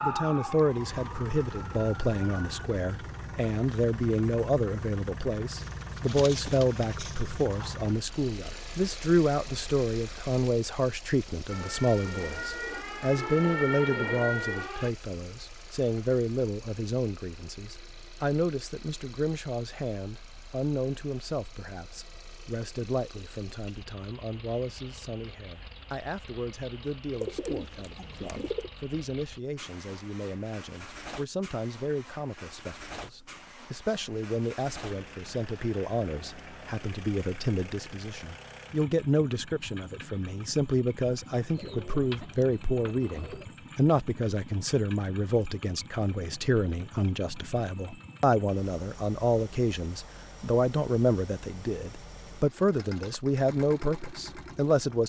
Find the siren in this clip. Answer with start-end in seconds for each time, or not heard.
0.0-2.7, 11.4-14.9.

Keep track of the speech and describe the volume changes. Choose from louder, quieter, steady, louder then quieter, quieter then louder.
quieter then louder.